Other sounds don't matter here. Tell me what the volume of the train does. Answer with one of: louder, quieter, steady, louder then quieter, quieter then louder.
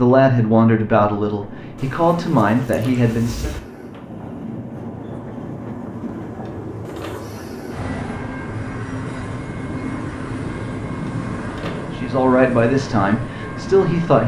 louder.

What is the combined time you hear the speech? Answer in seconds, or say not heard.
6 s.